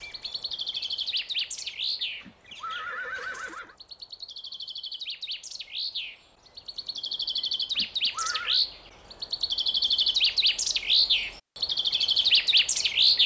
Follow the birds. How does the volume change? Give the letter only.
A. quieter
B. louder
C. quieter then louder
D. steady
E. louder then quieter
C.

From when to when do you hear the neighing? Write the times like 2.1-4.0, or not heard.
2.2-3.8, 7.8-8.6.